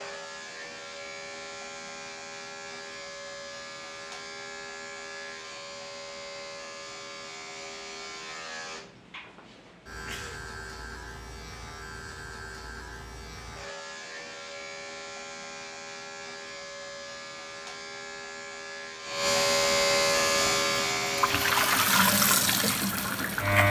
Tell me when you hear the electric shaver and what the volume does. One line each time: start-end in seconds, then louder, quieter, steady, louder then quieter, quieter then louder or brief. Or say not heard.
0.0-23.6 louder.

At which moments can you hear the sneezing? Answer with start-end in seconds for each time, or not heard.
9.6-10.4.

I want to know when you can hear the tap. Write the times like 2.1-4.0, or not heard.
20.2-23.6.